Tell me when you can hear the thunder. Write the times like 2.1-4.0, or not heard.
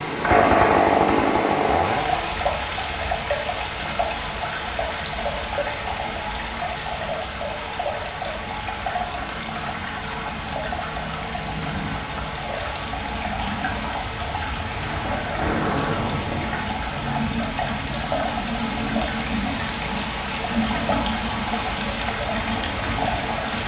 14.8-16.6.